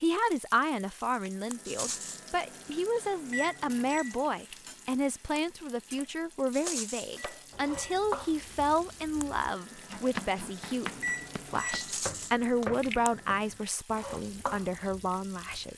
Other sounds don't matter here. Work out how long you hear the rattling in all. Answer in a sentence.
The rattling can be heard for 2 seconds in total.